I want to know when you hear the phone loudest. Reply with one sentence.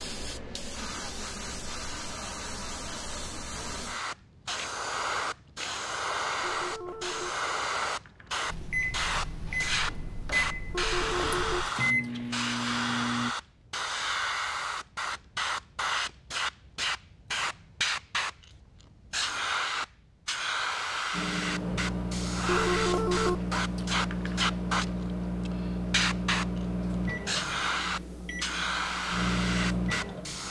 The loudest moment of the phone is at 23 seconds.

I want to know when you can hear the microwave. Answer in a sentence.
You can hear the microwave from 8.4 to 13.3 s and from 21.1 to 30.4 s.